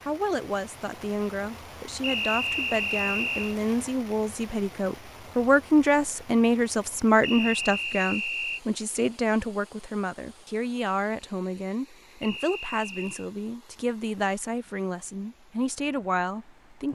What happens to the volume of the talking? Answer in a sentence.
The loudness of the talking goes up, then down.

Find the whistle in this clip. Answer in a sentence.
You can hear the whistle from 2.0 to 3.5 s, from 7.2 to 8.6 s and from 12.2 to 13.3 s.